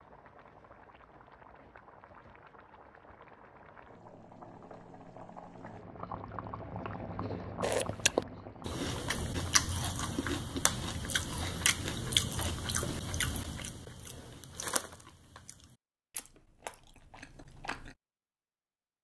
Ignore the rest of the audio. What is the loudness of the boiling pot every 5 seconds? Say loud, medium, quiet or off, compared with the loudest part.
medium, loud, off, off.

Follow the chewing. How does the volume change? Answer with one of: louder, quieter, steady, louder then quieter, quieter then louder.
quieter.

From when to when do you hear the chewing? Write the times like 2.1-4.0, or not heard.
7.6-17.9.